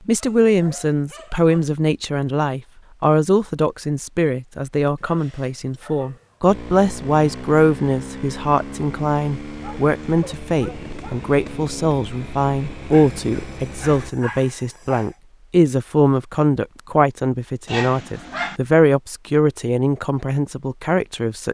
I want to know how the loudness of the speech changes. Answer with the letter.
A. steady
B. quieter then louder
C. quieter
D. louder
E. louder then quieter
A.